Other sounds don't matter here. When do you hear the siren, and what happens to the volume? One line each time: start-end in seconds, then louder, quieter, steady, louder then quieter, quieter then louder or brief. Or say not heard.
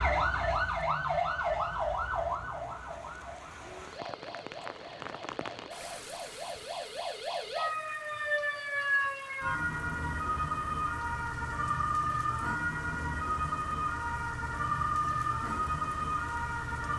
0.0-16.9 quieter then louder.